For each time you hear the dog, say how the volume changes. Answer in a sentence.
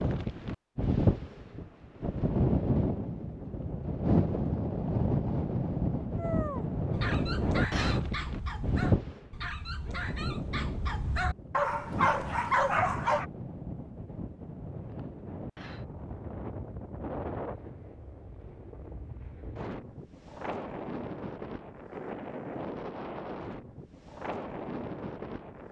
You can hear the dog from 6.2 to 13.2 s, getting louder.